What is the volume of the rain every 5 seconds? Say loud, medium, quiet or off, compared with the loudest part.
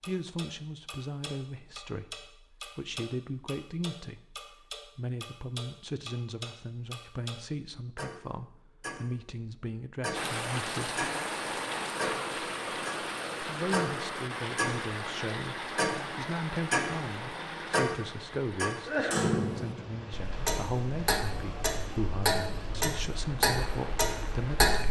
off, off, loud, loud, medium.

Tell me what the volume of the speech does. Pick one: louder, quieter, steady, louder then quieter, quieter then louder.
steady.